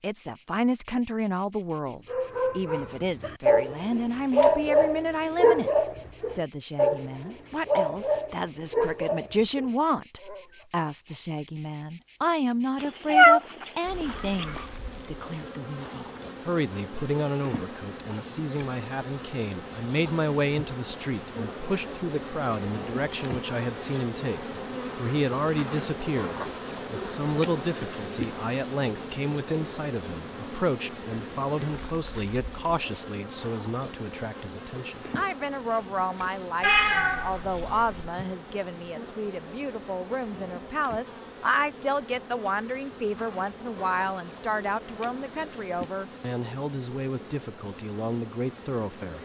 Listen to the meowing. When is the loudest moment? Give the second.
13 s.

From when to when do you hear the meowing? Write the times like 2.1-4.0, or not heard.
12.8-14.6, 36.6-38.1.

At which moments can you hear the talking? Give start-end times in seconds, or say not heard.
0.0-5.7, 6.3-49.2.